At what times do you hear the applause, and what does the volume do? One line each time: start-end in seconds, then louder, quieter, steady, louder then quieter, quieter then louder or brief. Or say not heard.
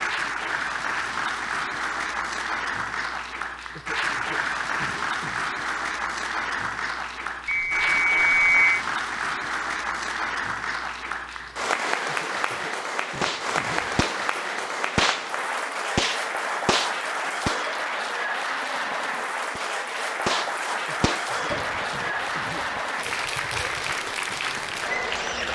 0.0-25.4 steady.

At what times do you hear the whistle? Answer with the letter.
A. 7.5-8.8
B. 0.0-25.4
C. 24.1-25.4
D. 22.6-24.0
A.